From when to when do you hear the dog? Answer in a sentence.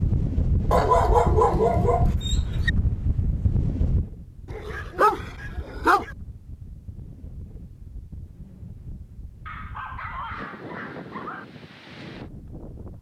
The dog can be heard from 0.7 to 2.7 s, from 4.5 to 6.2 s and from 9.4 to 11.4 s.